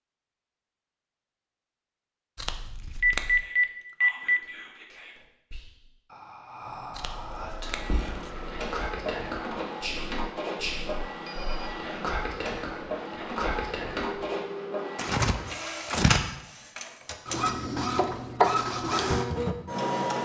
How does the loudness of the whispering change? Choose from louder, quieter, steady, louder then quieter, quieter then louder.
louder.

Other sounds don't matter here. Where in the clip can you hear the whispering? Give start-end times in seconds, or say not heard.
3.4-14.2.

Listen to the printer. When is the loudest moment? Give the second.
19 s.